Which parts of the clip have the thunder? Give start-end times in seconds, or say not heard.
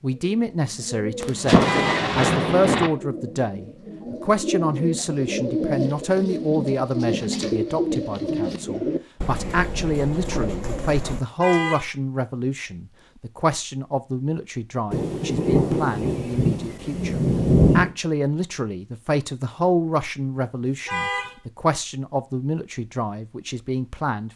1.2-2.9, 14.9-17.9.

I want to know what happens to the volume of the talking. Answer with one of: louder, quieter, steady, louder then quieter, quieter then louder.
steady.